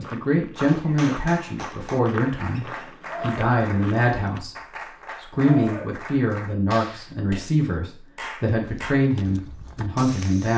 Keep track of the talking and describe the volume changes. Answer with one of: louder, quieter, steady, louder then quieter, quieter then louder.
steady.